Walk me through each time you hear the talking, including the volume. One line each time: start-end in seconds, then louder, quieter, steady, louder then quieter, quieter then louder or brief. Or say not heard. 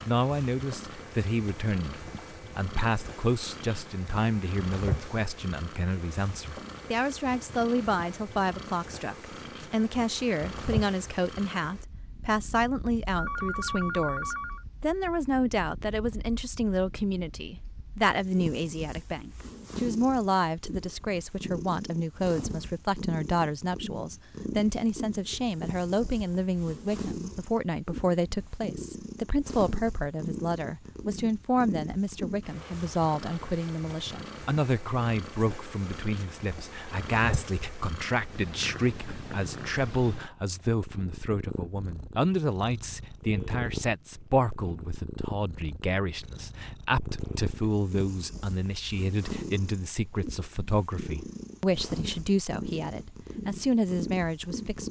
0.1-54.8 steady.